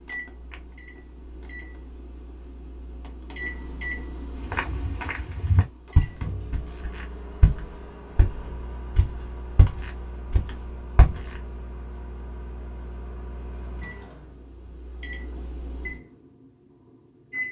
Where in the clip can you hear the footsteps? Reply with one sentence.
You can hear the footsteps from 4.5 to 11.2 s.